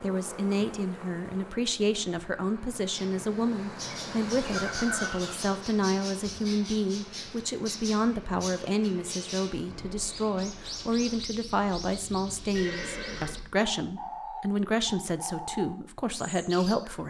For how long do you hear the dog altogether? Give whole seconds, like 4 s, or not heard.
not heard.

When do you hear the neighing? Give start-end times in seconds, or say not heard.
4.5-5.3, 12.5-13.5.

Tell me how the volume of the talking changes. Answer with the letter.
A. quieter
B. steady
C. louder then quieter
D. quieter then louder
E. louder
B.